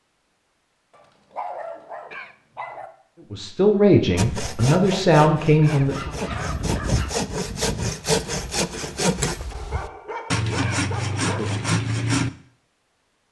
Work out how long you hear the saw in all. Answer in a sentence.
The saw can be heard for 8 seconds in total.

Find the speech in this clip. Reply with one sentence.
You can hear the speech from 3.3 to 6.1 s.